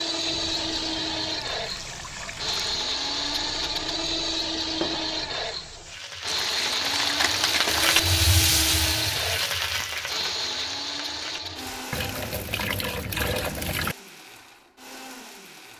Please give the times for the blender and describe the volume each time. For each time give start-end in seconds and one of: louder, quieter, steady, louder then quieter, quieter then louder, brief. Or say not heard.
0.0-15.7 quieter.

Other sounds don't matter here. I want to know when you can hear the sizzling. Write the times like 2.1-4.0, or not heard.
0.0-11.6.